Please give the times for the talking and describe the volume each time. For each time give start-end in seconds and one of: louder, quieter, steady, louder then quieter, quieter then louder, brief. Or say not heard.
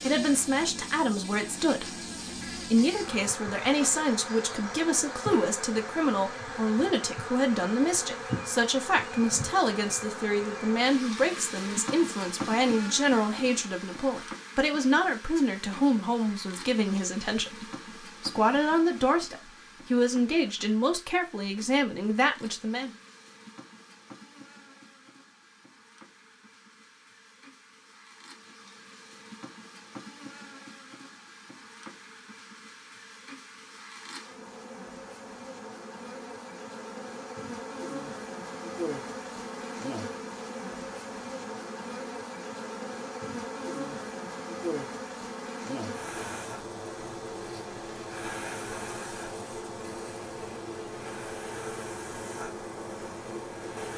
0.0-22.9 steady.